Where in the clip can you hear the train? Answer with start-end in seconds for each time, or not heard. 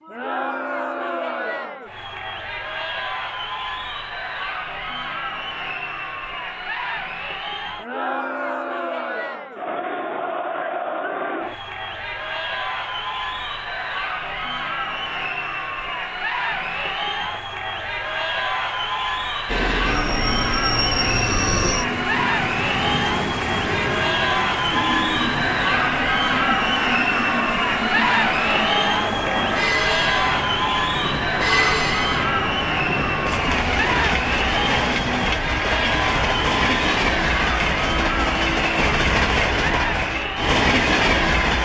19.4-41.6.